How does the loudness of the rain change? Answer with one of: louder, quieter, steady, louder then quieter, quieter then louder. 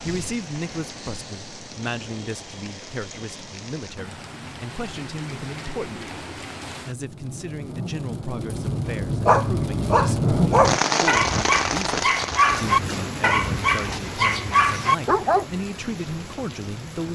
louder then quieter.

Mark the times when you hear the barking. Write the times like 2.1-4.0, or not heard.
9.2-15.4.